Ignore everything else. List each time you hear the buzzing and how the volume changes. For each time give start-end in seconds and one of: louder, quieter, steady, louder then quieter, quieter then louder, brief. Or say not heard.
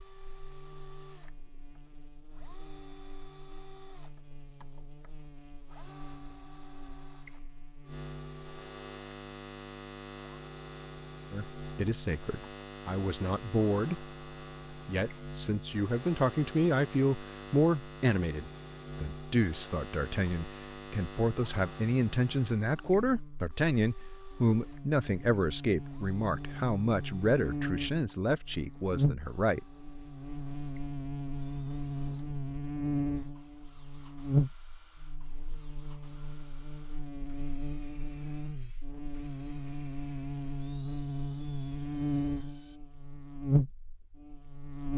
0.0-44.9 louder.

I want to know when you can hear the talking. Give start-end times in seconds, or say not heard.
11.3-29.6.